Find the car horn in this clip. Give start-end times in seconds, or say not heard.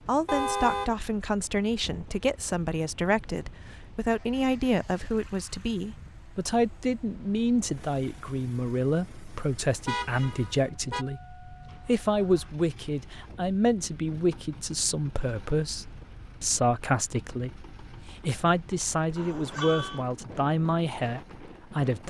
0.2-0.9, 9.8-11.1, 19.1-20.1.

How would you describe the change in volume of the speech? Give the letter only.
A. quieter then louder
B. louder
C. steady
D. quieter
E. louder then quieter
C.